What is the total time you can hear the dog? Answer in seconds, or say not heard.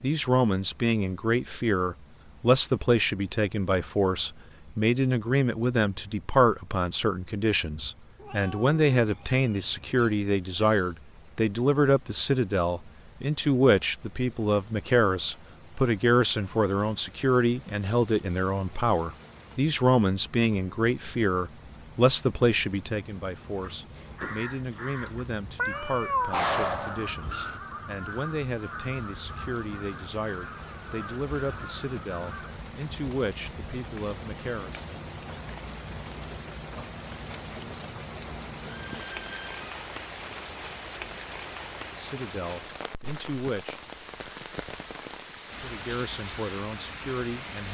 3 s.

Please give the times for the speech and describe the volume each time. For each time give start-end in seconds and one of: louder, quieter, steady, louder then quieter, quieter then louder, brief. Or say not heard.
0.0-34.9 quieter
41.9-43.8 brief
45.6-47.6 brief.